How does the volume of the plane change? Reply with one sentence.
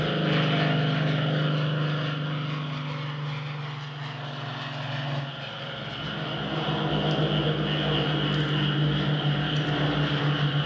The volume of the plane goes down, then up.